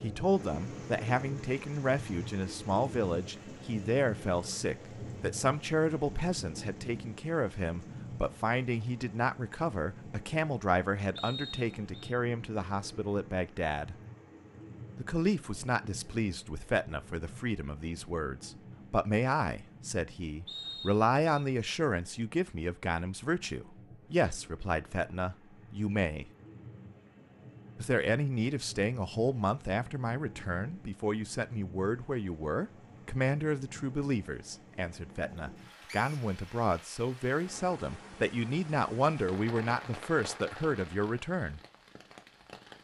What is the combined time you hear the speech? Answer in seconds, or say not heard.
39 s.